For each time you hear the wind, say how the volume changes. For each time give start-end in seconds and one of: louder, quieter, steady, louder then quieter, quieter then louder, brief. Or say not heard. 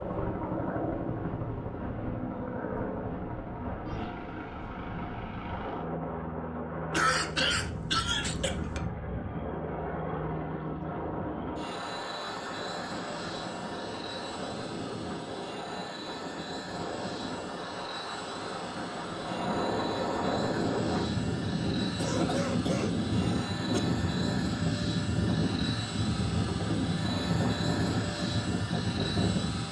0.0-29.6 louder.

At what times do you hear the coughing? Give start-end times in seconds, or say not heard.
6.9-8.8, 21.9-23.8.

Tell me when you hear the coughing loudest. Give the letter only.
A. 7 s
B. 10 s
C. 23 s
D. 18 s
A.